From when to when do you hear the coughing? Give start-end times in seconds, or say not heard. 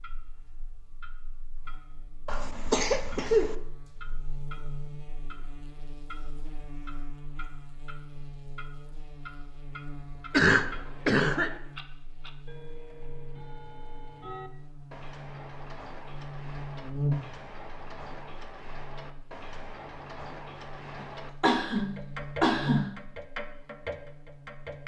2.2-3.5, 10.3-11.6, 21.4-22.9.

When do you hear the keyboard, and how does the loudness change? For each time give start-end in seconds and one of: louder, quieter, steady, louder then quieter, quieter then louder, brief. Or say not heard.
not heard.